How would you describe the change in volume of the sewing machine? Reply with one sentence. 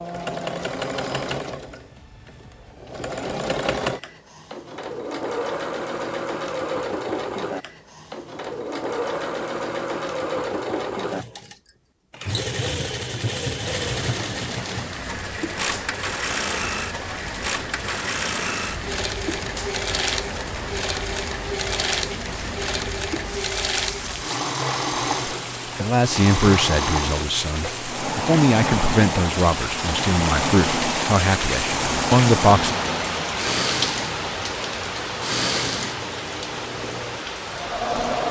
The volume of the sewing machine stays about the same.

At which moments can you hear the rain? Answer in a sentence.
You can hear the rain from 13.8 to 38.2 s.